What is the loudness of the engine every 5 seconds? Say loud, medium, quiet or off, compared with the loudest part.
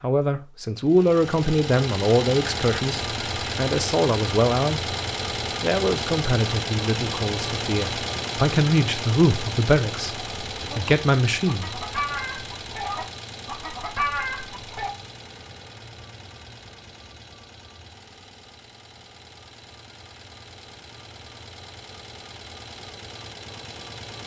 loud, loud, medium, quiet, quiet.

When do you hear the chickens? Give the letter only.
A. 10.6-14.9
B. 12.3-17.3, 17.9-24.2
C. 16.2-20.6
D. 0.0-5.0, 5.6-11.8
A.